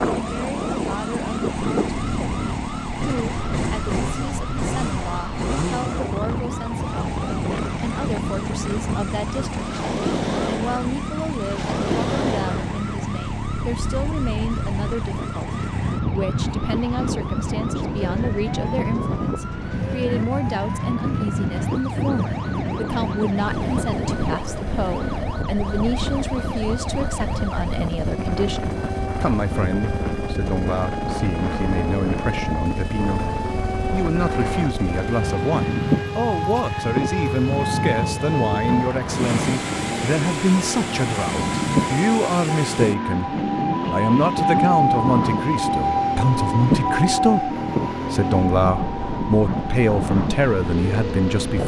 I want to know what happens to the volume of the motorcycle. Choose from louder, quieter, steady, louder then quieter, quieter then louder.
steady.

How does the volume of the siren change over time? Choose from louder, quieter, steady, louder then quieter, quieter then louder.
louder.